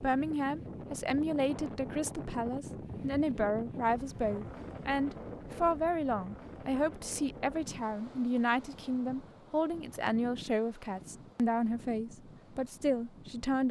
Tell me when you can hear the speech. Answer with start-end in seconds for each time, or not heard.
0.0-13.6.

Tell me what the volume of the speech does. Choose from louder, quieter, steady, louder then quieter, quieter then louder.
steady.